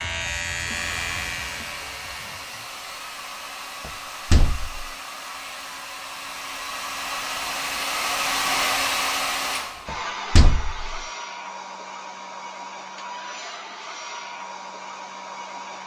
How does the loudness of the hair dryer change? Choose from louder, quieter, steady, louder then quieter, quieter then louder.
louder then quieter.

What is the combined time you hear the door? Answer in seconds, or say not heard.
2 s.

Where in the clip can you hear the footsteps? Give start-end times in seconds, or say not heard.
not heard.